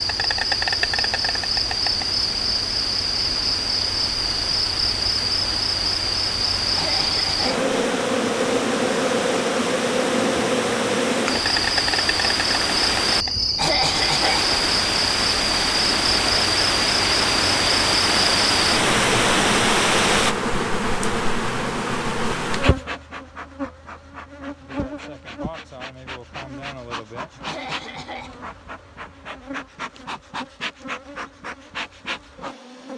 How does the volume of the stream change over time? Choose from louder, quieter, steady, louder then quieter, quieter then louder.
louder.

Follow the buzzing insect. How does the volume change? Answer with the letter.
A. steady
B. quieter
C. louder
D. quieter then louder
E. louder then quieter
B.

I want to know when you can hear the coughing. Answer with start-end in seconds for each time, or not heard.
6.8-7.7, 13.6-14.5, 27.4-28.4.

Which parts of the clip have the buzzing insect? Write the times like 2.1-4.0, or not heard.
0.0-32.9.